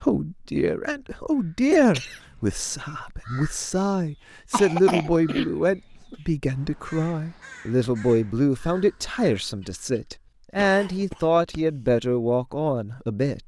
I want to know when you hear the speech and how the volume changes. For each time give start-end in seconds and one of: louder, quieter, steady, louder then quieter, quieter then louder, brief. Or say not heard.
0.0-13.4 steady.